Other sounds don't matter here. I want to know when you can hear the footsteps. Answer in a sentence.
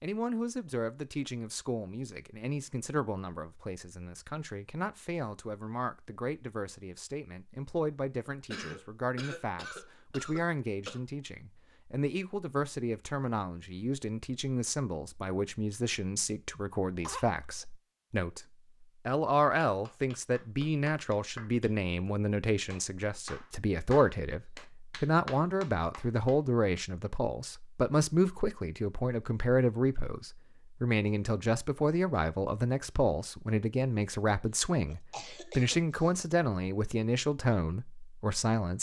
The footsteps can't be heard in this clip.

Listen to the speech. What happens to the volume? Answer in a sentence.
The volume of the speech goes up.